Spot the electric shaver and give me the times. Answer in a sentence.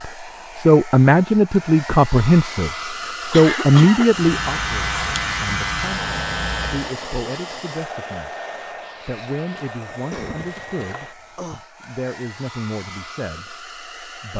The electric shaver can be heard from 4.0 to 7.0 s.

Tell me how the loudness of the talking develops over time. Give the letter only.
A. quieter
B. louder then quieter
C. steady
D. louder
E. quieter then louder
A.